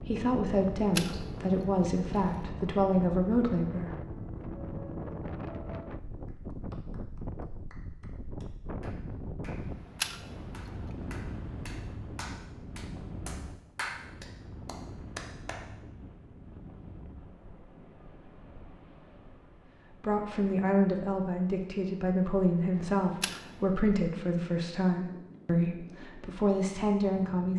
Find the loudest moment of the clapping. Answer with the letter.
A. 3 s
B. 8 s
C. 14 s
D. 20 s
C.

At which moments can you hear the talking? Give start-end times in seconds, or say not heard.
0.1-4.0, 20.0-27.5.